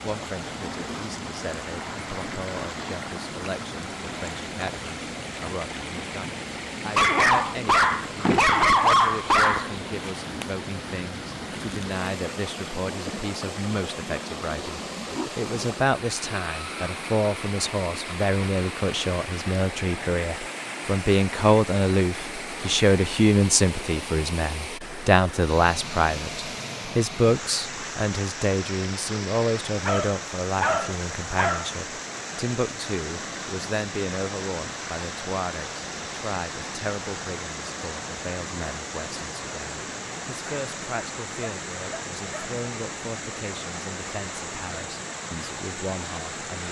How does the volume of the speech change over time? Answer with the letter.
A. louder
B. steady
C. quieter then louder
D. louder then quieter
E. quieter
D.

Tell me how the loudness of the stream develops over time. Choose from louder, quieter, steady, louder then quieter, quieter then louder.
steady.